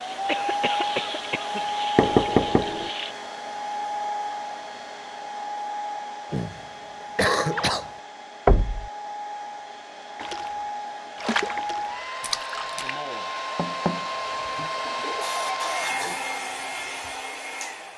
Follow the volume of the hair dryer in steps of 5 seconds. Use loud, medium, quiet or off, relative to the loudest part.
loud, medium, loud, loud.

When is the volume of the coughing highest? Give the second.
7 s.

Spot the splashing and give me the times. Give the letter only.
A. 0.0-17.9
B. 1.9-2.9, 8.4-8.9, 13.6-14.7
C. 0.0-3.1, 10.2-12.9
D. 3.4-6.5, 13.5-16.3
C.